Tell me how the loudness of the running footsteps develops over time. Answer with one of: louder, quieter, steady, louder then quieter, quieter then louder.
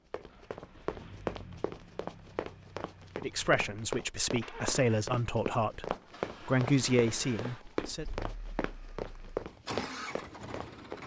steady.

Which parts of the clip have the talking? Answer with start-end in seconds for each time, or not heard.
3.1-8.1.